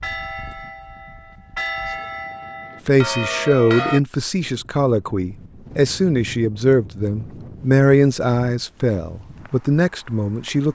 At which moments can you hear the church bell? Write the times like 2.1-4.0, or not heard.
0.0-4.0.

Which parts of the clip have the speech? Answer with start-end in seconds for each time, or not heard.
2.9-10.7.